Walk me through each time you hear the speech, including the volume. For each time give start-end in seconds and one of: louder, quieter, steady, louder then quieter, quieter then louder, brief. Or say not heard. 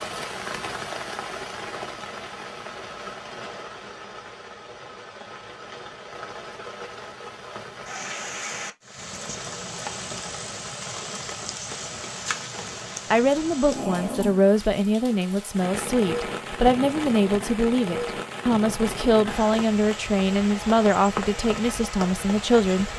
13.1-22.9 steady.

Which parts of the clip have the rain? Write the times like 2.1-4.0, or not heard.
0.0-22.9.